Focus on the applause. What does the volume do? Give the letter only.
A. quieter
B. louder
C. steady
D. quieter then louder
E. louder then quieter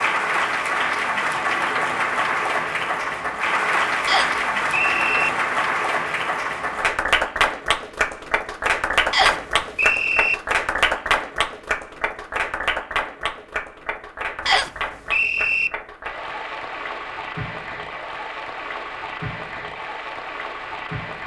A.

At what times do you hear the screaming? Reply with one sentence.
The screaming can't be heard in this clip.